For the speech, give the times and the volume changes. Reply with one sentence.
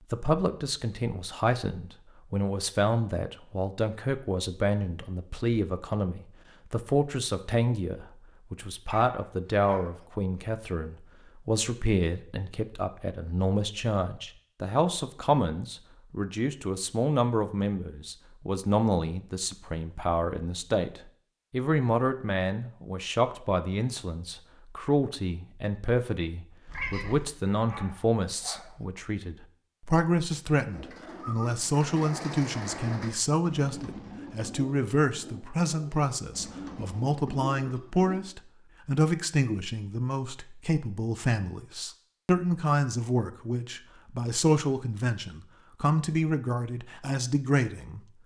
You can hear the speech from 0.1 to 48.0 s, at a steady volume.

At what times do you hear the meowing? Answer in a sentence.
You can hear the meowing from 26.6 to 27.3 s.